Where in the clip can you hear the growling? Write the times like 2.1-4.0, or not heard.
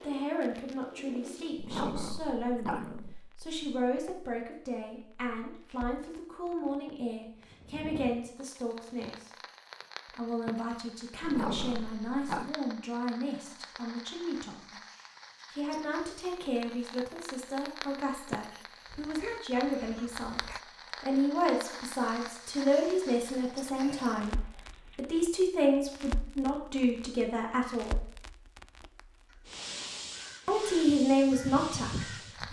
1.6-3.3, 11.2-12.6, 23.1-25.1.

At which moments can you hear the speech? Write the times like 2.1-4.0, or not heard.
0.0-9.3, 10.2-14.8, 15.5-28.1, 30.4-32.4.